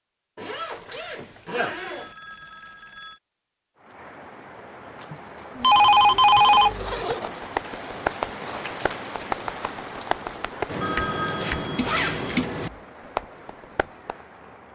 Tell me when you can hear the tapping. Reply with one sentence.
The tapping can be heard from 7.1 to 14.2 s.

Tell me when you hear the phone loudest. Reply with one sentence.
The loudest moment of the phone is at 6 seconds.